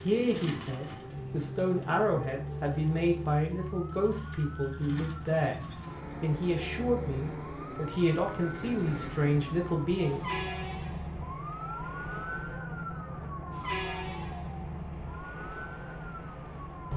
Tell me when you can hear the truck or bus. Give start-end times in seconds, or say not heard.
0.0-16.9.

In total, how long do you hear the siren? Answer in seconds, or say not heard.
17 s.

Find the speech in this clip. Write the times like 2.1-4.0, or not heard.
0.0-5.6, 6.2-10.4.